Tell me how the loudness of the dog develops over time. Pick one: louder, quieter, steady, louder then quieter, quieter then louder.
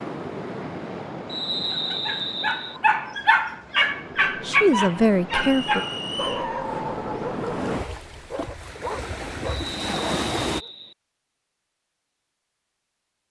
quieter.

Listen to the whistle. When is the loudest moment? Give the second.
2 s.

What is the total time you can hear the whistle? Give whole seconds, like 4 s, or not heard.
4 s.